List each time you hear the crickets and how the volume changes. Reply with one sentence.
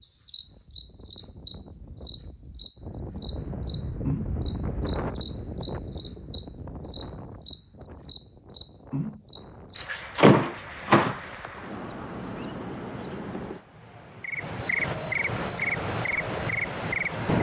The crickets can be heard from 0.0 to 17.3 s, getting louder.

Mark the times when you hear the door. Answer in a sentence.
The door can be heard from 10.2 to 11.2 s.